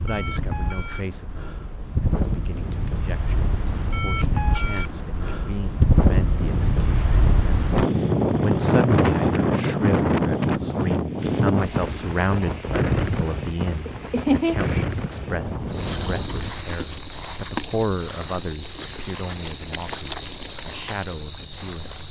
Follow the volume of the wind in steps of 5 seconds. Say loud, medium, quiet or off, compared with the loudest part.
medium, loud, loud, medium, off.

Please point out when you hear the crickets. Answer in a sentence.
The crickets can be heard from 9.8 to 22.0 s.